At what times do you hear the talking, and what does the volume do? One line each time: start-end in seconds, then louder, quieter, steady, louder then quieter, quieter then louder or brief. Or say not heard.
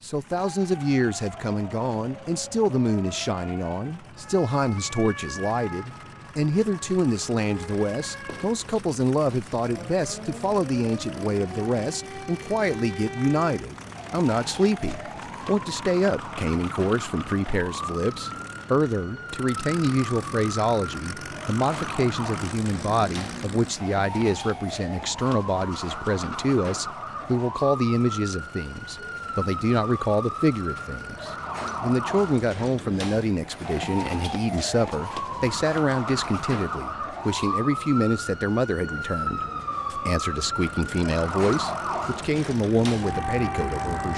0.0-44.1 steady.